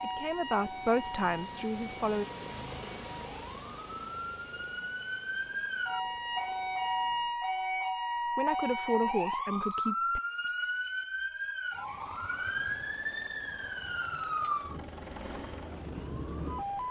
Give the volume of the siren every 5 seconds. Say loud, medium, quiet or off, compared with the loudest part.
medium, loud, loud, medium.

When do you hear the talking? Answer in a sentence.
The talking can be heard from 0.0 to 2.2 s and from 8.3 to 10.2 s.